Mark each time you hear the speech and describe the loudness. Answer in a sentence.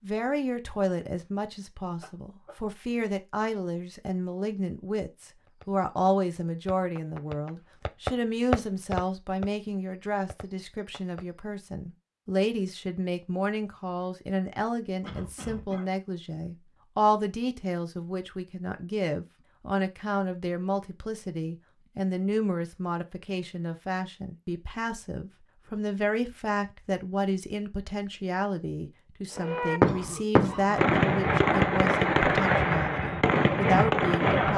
The speech can be heard from 0.0 to 34.5 s, at a steady volume.